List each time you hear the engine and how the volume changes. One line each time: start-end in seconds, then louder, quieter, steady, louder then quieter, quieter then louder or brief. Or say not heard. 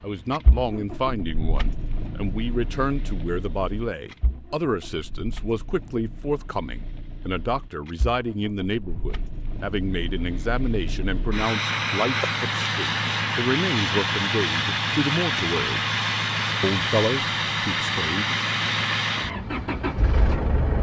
0.2-20.7 quieter then louder.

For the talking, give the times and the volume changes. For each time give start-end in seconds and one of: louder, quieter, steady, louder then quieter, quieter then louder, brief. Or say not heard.
0.0-15.8 steady
16.6-18.4 brief.